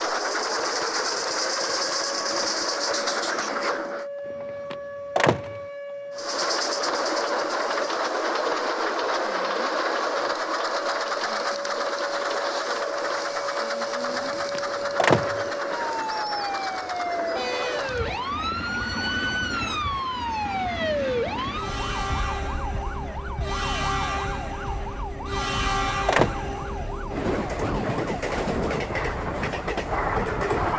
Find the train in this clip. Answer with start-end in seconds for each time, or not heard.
0.0-4.0, 6.2-30.7.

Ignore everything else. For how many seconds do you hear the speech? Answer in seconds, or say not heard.
not heard.